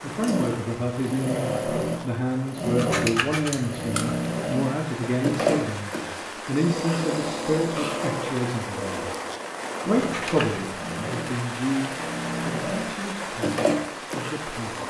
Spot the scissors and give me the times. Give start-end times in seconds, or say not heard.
2.8-4.2, 9.9-10.7.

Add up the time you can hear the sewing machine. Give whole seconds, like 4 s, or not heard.
15 s.